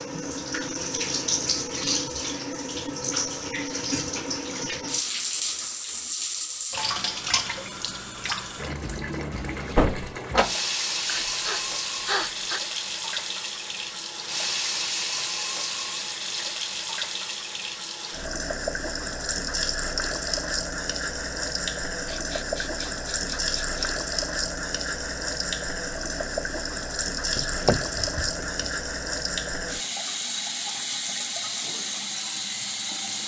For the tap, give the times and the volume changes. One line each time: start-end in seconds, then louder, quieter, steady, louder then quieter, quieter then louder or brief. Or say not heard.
0.0-33.2 steady.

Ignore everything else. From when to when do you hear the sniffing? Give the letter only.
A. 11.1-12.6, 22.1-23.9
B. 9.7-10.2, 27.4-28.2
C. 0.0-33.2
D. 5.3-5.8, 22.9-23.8
A.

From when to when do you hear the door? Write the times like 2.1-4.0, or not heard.
9.7-10.2, 27.4-28.2.